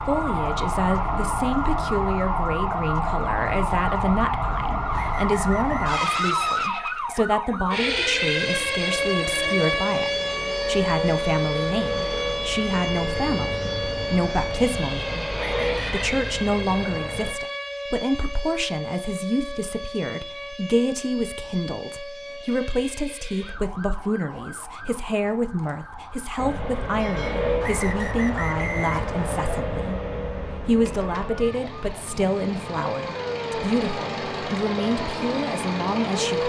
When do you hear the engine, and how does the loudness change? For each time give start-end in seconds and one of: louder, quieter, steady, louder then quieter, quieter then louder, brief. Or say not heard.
7.7-17.4 louder
26.4-36.4 quieter then louder.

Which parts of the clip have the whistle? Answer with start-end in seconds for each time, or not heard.
4.9-6.7, 15.3-16.2, 27.6-29.6.